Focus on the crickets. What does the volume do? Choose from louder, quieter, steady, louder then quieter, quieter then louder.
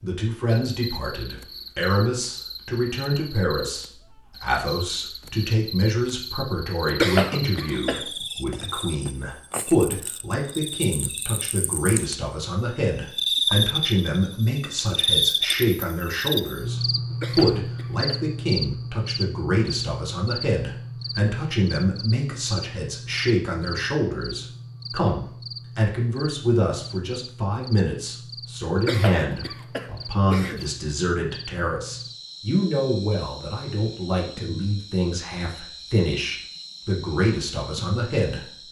louder then quieter.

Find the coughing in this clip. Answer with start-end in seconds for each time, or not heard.
6.8-8.1, 17.1-18.2, 28.8-30.7.